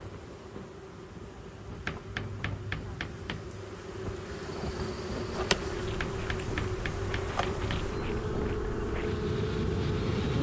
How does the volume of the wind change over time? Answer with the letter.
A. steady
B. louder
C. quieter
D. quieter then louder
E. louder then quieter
B.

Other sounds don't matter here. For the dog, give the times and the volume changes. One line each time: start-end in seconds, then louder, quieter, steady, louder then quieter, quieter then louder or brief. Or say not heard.
not heard.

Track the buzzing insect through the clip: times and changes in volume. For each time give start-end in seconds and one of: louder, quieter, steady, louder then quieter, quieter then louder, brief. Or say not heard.
0.0-10.3 louder.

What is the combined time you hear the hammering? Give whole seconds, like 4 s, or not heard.
4 s.